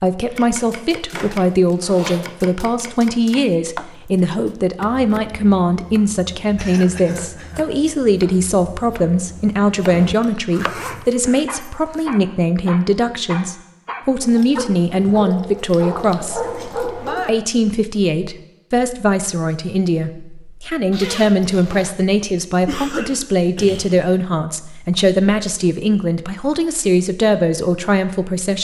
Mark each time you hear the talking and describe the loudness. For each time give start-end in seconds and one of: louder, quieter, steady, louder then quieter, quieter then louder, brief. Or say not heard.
0.0-28.5 steady.